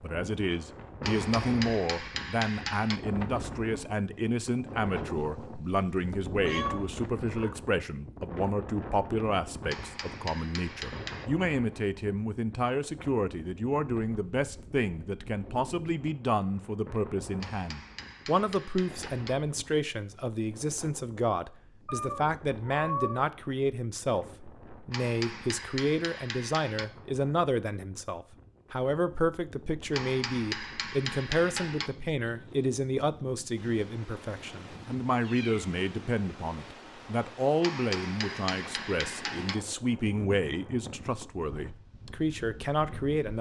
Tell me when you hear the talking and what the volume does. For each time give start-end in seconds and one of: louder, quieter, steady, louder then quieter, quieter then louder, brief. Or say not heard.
0.0-43.3 steady.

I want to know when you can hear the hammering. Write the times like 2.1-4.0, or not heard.
1.0-3.0, 9.7-11.3, 17.4-19.4, 24.9-26.9, 29.9-31.9, 37.6-39.5.